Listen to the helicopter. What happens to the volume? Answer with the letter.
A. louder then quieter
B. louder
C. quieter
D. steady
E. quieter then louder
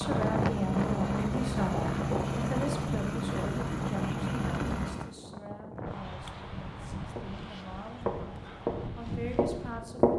D.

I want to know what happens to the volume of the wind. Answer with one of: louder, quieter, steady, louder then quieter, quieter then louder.
quieter.